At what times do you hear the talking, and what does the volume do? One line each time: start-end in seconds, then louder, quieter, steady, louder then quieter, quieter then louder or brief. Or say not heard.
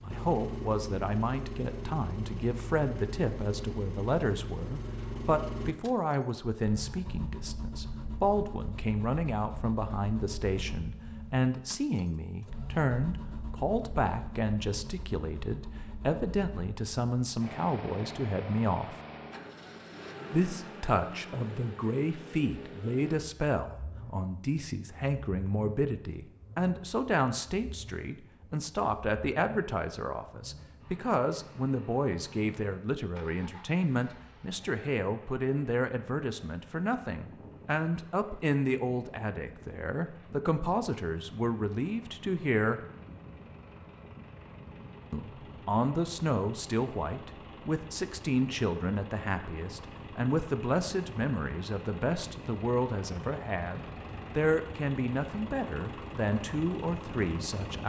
0.0-18.9 steady
20.3-42.8 steady
45.1-57.8 steady.